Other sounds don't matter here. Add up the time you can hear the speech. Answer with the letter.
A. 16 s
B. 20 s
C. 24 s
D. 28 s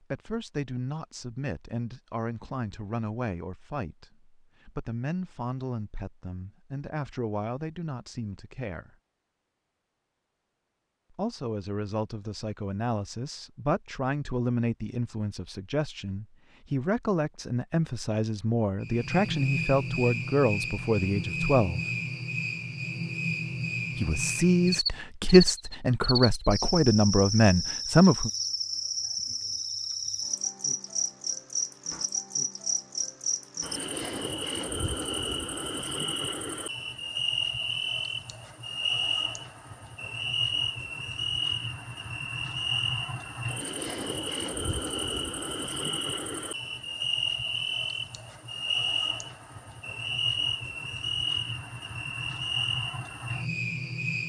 C.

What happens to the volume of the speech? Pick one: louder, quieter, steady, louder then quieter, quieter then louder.
louder.